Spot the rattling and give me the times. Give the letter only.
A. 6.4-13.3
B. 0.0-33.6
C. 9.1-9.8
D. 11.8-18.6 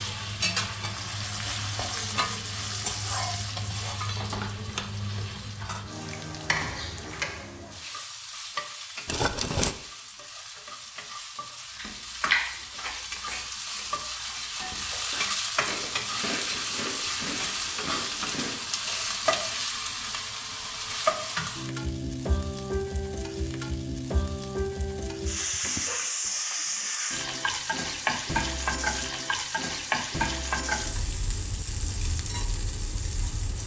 C.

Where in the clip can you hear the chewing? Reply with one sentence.
You can hear the chewing from 11.8 to 18.6 s.